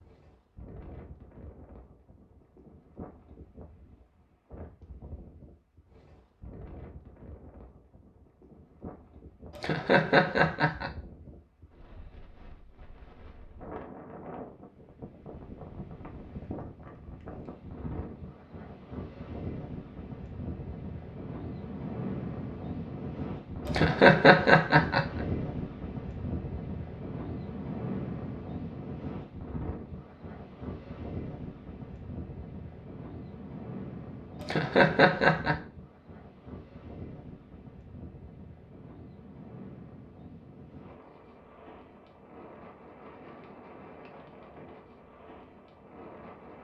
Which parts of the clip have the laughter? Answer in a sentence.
The laughter can be heard from 9.6 to 10.9 s, from 23.6 to 25.1 s and from 34.4 to 35.5 s.